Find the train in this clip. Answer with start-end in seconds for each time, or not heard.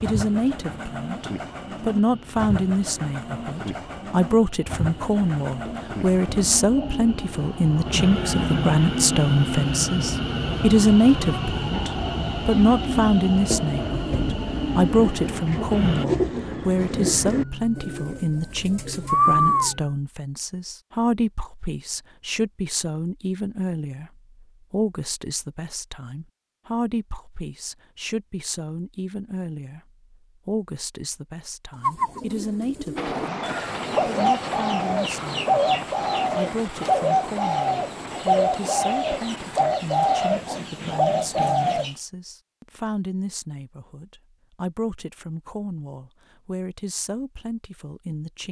0.1-16.1, 33.0-41.8.